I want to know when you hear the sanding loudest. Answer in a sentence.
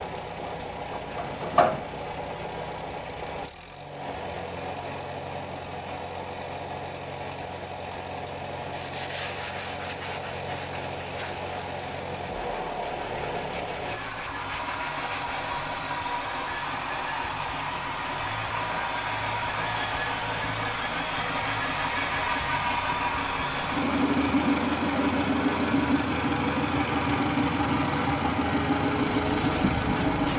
The loudest moment of the sanding is at 2 seconds.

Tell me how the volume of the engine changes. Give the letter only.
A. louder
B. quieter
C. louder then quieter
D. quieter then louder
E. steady
A.